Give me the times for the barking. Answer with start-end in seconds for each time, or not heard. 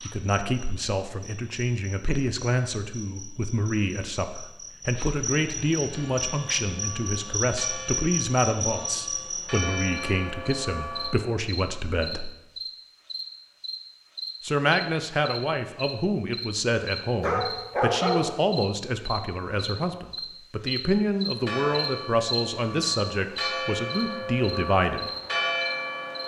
17.2-18.4.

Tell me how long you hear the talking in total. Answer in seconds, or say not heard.
23 s.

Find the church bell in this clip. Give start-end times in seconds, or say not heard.
5.9-11.2, 21.4-26.2.